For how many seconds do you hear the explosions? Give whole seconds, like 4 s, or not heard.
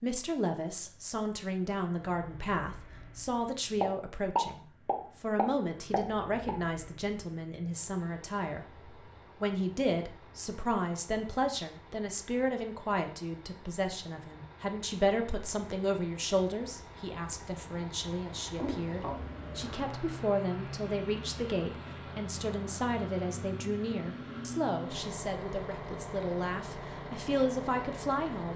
3 s.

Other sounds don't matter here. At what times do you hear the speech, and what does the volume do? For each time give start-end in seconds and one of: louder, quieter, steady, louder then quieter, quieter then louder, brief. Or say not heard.
0.0-28.5 steady.